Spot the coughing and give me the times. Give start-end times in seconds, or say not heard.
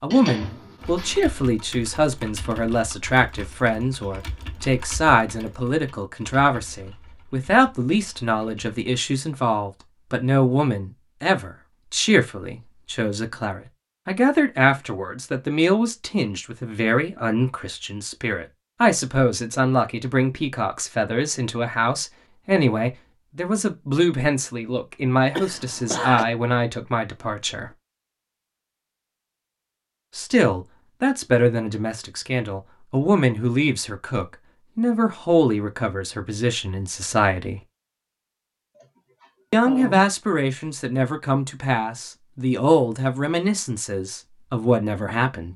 0.1-1.4, 25.4-26.2, 38.8-40.1.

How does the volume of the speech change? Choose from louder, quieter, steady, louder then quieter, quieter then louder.
steady.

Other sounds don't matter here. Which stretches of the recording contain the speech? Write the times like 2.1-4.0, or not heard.
0.0-27.7, 30.1-37.6, 39.5-45.5.